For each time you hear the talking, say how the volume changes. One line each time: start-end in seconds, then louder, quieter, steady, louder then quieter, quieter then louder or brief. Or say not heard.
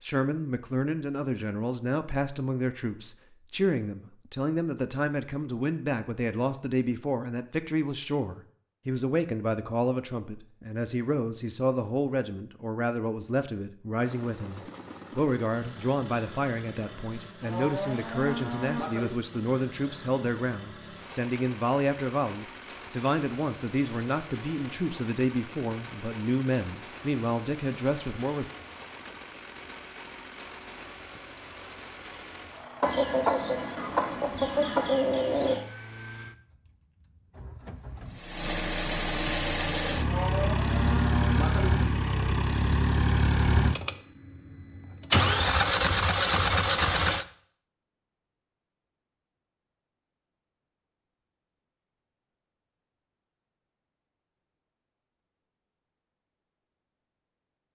0.0-28.4 steady.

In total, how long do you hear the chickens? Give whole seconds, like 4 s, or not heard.
3 s.